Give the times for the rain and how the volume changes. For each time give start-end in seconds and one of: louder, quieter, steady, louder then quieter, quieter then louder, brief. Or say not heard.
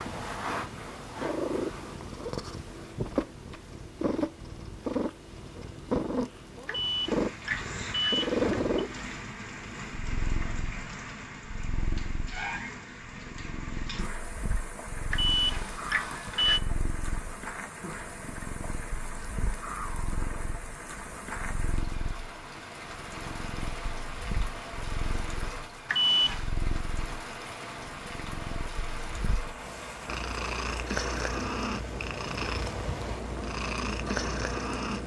7.0-35.0 steady.